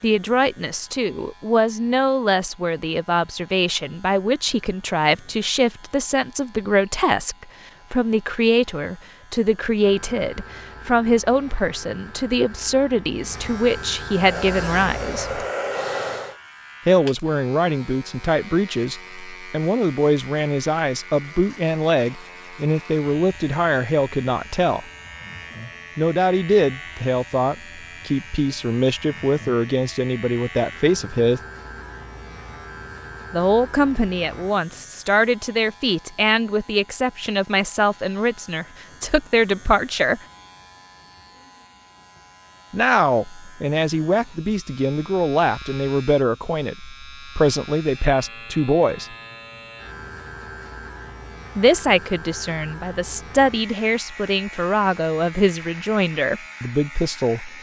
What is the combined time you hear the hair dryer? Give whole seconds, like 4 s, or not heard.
2 s.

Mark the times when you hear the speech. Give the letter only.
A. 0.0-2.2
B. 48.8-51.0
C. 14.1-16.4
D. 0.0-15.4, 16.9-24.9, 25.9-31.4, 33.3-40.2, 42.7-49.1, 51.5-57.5
D.